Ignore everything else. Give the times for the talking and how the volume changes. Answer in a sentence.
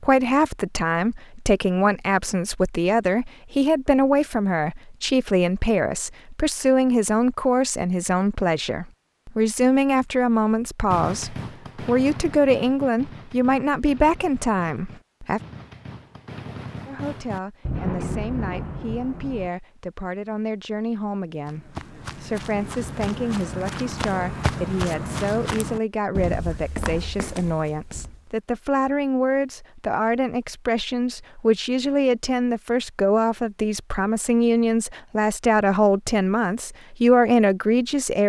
The talking can be heard from 0.0 to 15.4 s, at a steady volume; and from 16.9 to 38.2 s, getting louder.